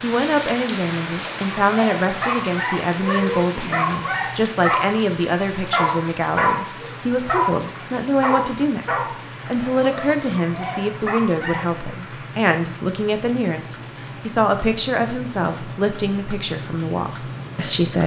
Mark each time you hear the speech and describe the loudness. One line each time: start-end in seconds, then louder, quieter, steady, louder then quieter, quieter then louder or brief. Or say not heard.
0.0-18.0 steady.